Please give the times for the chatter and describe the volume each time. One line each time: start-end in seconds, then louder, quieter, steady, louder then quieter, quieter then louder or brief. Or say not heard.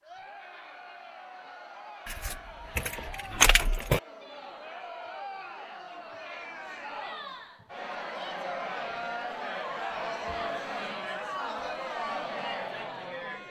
0.0-13.4 louder.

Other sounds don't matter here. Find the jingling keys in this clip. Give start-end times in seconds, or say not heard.
2.0-4.0.